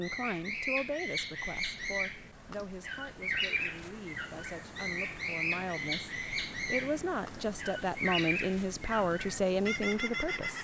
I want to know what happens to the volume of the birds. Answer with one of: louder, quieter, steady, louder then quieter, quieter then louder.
steady.